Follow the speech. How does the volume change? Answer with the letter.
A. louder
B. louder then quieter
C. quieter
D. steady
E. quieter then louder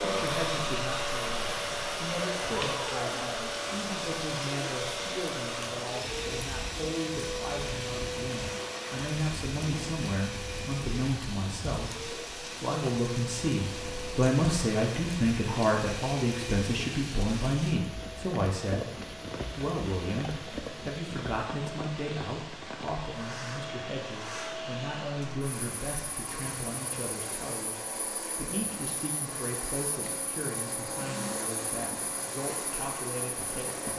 B.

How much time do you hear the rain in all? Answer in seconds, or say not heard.
34 s.